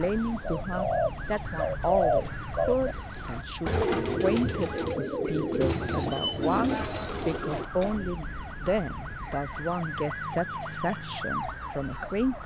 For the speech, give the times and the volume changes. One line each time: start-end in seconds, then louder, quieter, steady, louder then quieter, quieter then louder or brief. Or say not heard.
0.0-12.4 steady.